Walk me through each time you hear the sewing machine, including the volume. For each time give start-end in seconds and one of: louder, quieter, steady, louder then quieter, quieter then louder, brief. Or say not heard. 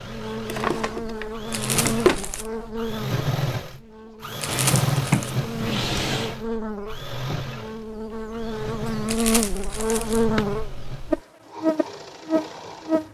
0.0-13.0 louder then quieter.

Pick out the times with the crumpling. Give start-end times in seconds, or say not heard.
1.5-2.5, 4.4-5.3, 9.1-10.2.